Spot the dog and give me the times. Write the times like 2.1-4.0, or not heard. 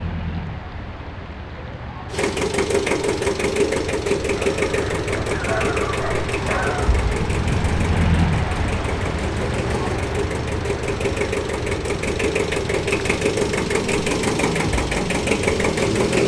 4.3-7.0.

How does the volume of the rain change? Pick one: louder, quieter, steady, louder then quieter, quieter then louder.
louder then quieter.